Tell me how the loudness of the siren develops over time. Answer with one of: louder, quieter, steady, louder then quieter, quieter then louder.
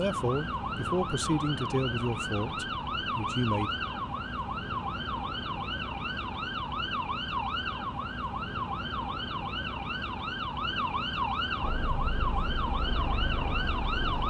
steady.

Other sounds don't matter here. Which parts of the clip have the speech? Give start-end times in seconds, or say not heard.
0.0-3.7.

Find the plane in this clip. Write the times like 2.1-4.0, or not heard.
11.6-14.2.